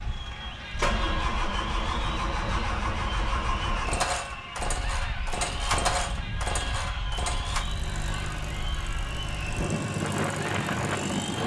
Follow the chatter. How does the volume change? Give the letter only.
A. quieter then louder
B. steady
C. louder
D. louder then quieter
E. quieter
B.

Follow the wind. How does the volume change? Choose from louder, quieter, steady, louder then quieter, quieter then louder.
louder.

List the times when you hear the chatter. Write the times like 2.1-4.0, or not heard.
0.0-11.4.